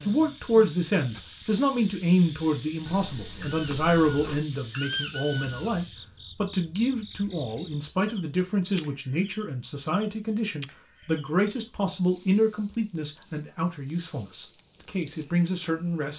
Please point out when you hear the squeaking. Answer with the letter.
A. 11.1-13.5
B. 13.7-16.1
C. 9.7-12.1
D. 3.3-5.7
D.